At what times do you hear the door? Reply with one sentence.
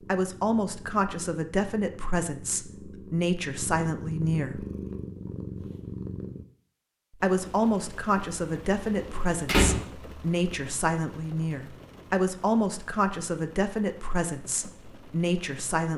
You can hear the door from 8.9 to 9.8 s.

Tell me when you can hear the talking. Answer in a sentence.
The talking can be heard from 0.1 to 4.7 s and from 7.2 to 15.9 s.